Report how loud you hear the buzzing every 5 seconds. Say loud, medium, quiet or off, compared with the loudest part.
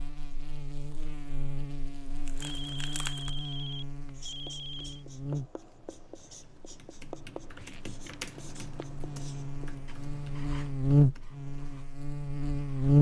quiet, quiet, loud.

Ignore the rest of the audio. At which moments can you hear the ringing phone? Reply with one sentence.
You can hear the ringing phone from 2.4 to 5.0 s.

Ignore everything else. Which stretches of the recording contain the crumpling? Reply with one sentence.
The crumpling can be heard from 2.2 to 3.3 s and from 7.4 to 8.9 s.